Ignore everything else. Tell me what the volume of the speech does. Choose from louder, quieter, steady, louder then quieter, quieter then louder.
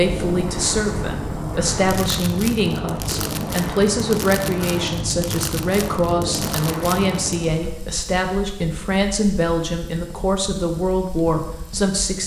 steady.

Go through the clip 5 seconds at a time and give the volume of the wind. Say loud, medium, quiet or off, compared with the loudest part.
loud, loud, off.